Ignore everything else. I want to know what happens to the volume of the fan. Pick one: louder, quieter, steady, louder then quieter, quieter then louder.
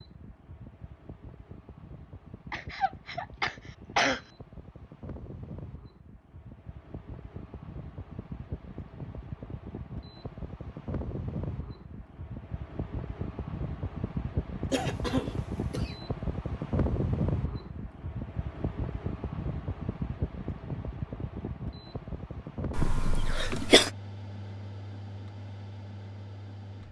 louder then quieter.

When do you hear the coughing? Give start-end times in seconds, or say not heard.
2.5-4.2, 14.7-15.9, 22.8-23.9.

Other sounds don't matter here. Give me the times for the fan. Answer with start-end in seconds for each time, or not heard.
0.0-26.8.